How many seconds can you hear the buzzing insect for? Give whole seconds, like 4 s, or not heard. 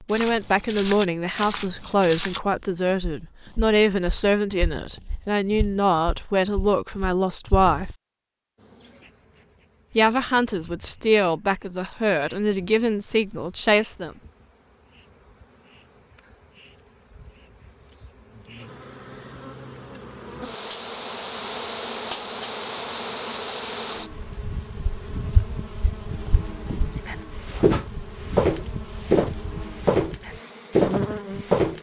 23 s.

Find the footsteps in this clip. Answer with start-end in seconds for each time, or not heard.
0.1-7.7, 24.8-31.7.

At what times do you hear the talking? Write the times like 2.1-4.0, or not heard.
0.0-7.9, 9.9-14.1.